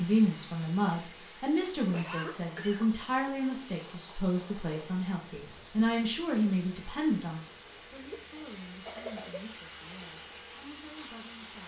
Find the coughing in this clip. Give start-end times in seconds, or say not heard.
1.9-3.0, 8.0-9.4.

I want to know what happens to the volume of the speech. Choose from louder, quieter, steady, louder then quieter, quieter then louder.
quieter.